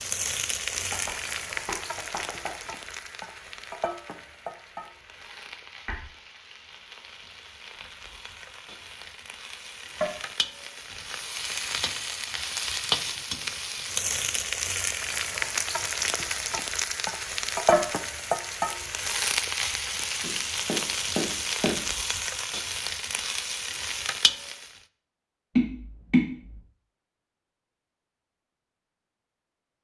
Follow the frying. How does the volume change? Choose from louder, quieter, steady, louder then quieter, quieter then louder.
quieter then louder.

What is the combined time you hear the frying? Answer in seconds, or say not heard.
25 s.